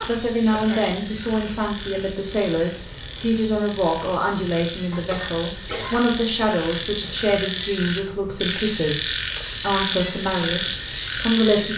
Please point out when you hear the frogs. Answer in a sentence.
The frogs can be heard from 0.0 to 11.7 s.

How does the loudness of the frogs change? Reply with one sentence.
The volume of the frogs goes up.